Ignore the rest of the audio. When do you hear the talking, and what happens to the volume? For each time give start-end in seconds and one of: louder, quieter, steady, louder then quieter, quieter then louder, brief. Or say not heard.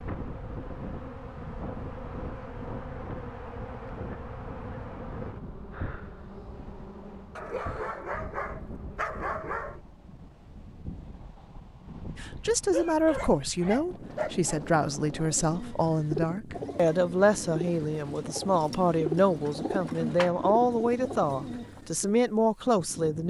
12.2-23.2 steady.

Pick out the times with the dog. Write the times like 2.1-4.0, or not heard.
7.3-9.8, 12.7-14.7.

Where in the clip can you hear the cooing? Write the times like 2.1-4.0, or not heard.
14.9-22.1.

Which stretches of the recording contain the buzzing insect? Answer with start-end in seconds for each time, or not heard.
0.0-9.1.